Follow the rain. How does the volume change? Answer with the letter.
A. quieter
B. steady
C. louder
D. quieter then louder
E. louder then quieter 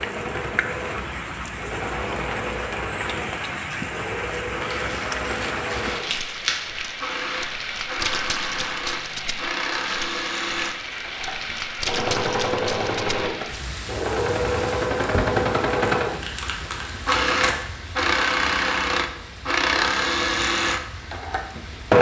A.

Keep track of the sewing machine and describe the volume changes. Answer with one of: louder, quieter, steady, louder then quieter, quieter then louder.
louder.